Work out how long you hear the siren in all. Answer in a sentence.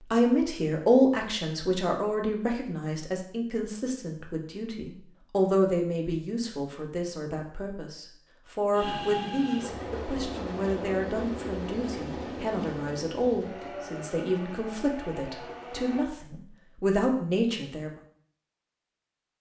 You can't hear the siren here.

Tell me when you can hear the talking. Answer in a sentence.
You can hear the talking from 0.1 to 17.9 s.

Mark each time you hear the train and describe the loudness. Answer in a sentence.
You can hear the train from 8.7 to 16.1 s, getting quieter.